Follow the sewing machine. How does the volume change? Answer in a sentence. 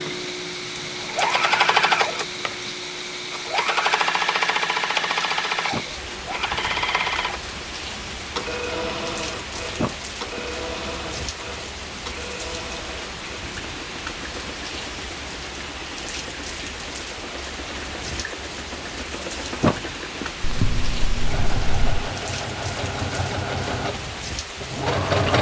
The loudness of the sewing machine goes down, then up.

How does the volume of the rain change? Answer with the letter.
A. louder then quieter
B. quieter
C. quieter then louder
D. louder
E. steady
E.